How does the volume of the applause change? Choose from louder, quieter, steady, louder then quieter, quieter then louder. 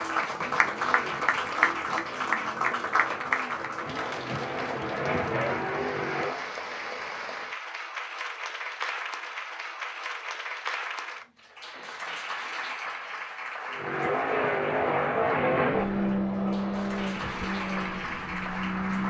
quieter.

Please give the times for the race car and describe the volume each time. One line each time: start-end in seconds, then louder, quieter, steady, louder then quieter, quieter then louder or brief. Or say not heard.
0.0-6.5 louder
13.7-19.0 quieter.